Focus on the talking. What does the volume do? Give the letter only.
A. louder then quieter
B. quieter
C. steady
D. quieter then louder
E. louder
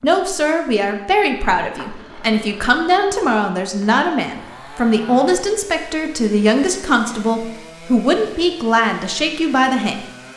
C.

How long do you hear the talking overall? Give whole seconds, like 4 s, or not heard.
10 s.